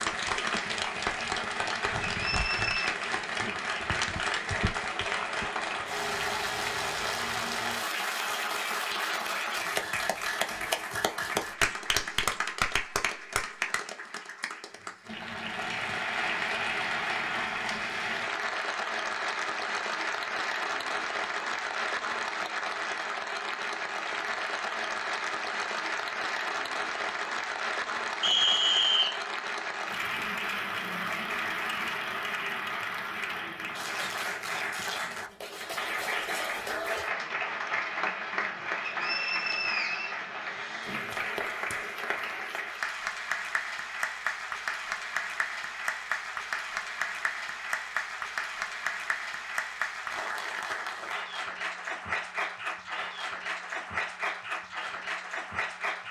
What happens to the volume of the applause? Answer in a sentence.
The volume of the applause stays about the same.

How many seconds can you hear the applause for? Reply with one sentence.
The applause can be heard for 56 seconds in total.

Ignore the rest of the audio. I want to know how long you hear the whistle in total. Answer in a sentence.
The whistle can be heard for 3 seconds in total.